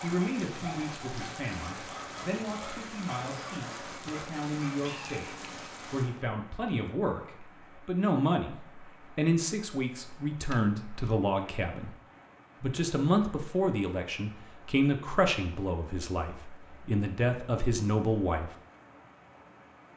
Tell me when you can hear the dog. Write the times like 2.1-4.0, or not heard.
0.0-5.4.